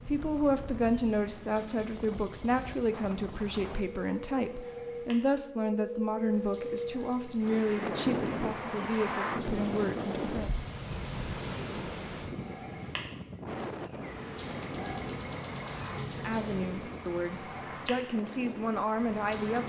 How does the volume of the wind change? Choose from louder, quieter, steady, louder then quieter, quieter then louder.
louder then quieter.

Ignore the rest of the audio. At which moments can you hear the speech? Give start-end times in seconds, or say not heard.
0.1-10.5, 16.1-19.6.